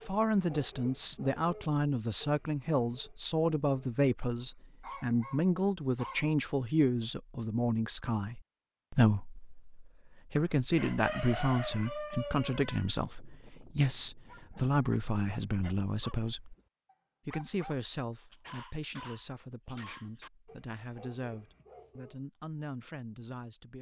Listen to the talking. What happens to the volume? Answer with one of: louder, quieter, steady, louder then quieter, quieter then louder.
quieter.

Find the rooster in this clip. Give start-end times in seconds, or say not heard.
10.3-12.9.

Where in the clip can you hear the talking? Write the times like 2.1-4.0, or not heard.
0.1-16.6, 17.2-23.7.